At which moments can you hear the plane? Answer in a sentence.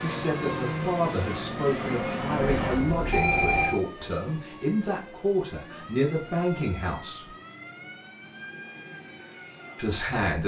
You can hear the plane from 0.0 to 2.9 s.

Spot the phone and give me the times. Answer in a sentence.
You can hear the phone from 2.4 to 3.8 s.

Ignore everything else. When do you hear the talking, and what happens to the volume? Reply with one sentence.
You can hear the talking from 0.0 to 7.2 s, at a steady volume; and briefly from 9.8 to 10.4 s.